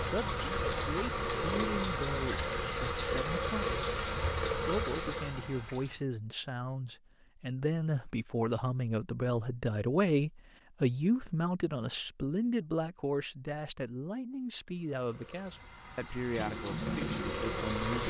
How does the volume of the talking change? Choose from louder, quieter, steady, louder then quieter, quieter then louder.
louder then quieter.